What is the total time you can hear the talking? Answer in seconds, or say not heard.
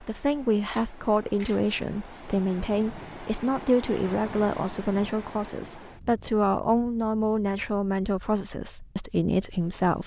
10 s.